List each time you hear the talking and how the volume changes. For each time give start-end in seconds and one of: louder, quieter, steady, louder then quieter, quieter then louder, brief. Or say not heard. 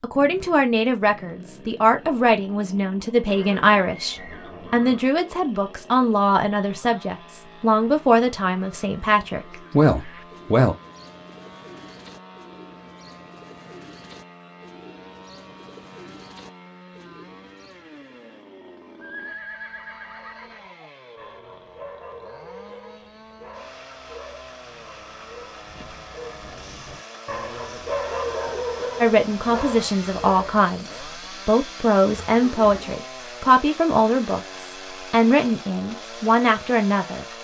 0.0-10.8 steady
29.0-37.2 steady.